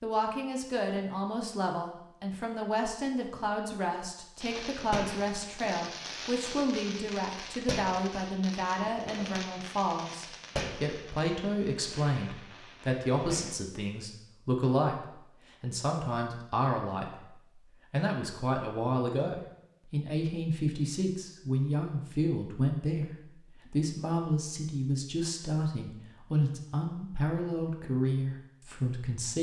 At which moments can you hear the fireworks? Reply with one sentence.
You can hear the fireworks from 4.4 to 13.6 s.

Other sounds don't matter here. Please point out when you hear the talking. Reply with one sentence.
The talking can be heard from 0.0 to 29.3 s.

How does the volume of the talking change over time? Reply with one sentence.
The volume of the talking stays about the same.